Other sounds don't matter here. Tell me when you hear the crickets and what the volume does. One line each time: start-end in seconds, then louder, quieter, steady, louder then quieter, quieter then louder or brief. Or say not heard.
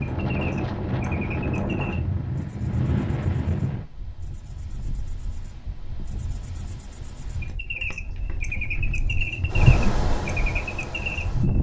0.0-11.5 quieter then louder.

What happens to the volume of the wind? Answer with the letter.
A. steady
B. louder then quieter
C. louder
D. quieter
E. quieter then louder
E.